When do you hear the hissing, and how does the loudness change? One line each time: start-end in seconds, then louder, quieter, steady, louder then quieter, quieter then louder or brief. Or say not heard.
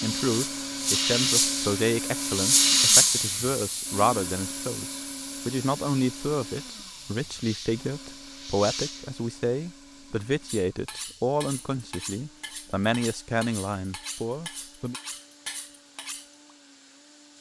0.0-17.3 quieter.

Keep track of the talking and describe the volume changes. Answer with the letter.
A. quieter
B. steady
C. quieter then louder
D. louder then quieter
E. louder
B.